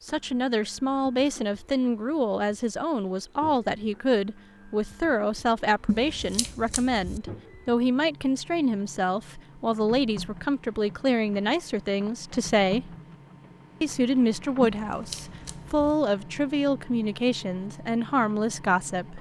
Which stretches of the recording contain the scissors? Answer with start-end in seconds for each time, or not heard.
5.8-7.2, 14.6-15.8.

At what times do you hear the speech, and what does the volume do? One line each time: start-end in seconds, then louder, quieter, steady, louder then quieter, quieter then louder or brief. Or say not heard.
0.1-12.8 steady
13.8-19.1 steady.